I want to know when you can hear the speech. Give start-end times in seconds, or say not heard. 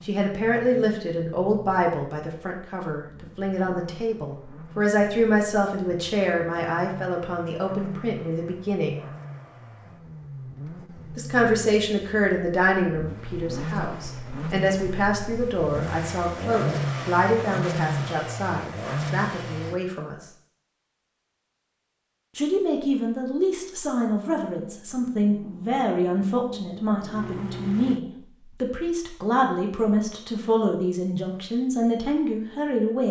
0.0-9.1, 11.2-20.2, 22.4-33.0.